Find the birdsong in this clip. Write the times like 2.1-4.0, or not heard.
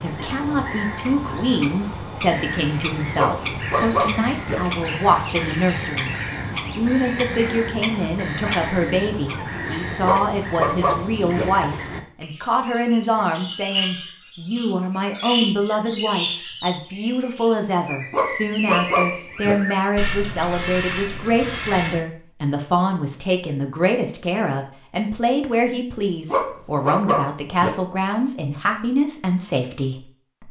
0.0-22.0.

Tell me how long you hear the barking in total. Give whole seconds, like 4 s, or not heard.
6 s.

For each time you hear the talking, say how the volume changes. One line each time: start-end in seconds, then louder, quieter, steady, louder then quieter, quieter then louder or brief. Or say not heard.
0.0-30.4 steady.